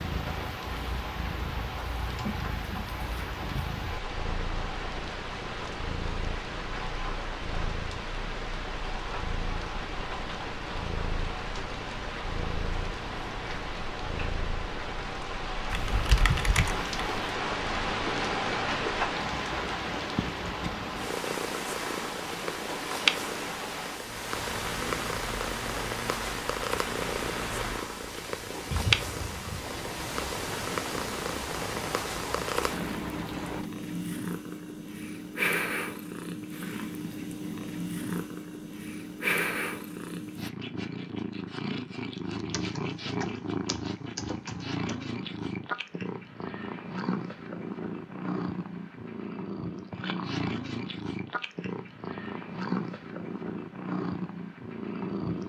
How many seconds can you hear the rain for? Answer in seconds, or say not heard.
34 s.